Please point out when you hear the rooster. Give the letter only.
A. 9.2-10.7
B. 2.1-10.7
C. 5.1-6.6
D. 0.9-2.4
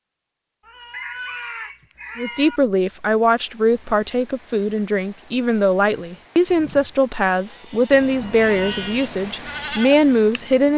D.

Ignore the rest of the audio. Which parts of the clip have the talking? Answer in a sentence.
You can hear the talking from 2.1 to 10.7 s.